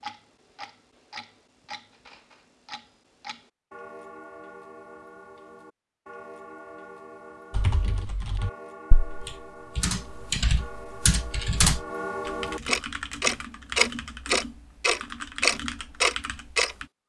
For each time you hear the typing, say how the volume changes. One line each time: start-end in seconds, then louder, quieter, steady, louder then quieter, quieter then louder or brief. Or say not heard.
7.5-16.9 louder then quieter.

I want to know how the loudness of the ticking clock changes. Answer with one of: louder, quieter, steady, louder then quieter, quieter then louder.
louder.